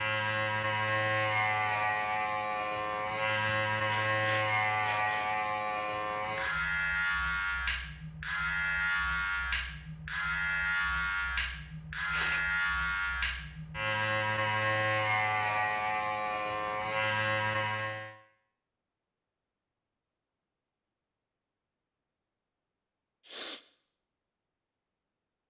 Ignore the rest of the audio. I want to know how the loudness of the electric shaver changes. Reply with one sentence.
The volume of the electric shaver stays about the same.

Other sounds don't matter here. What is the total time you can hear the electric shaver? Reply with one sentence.
The electric shaver can be heard for 18 seconds in total.